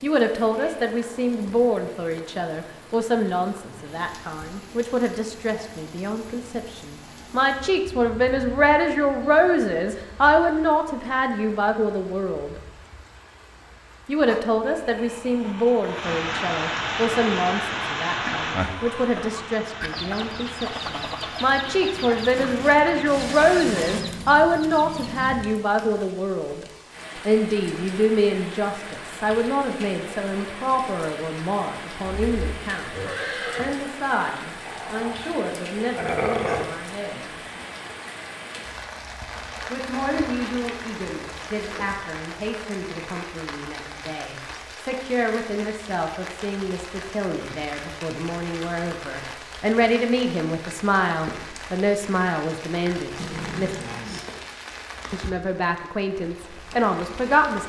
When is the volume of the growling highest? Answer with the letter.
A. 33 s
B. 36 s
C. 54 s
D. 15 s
B.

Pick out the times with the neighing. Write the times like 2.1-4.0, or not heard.
32.0-33.8.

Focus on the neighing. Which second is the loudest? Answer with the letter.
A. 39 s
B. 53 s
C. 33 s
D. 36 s
C.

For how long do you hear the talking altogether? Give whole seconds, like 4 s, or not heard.
52 s.